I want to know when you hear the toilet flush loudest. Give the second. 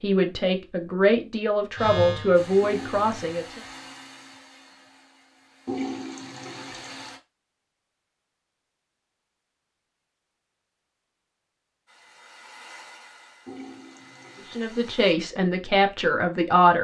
6 s.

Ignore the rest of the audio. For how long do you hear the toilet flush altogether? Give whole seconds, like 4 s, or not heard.
4 s.